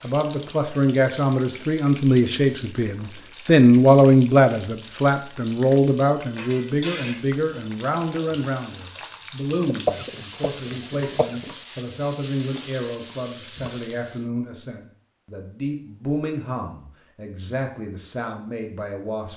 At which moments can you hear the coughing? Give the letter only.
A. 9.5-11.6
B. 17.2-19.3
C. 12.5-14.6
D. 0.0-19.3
A.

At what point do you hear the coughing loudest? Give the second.
10 s.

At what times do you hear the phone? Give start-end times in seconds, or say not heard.
not heard.